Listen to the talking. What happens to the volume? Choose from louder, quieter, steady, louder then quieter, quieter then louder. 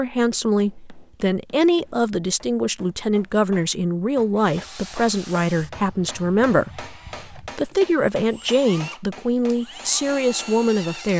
steady.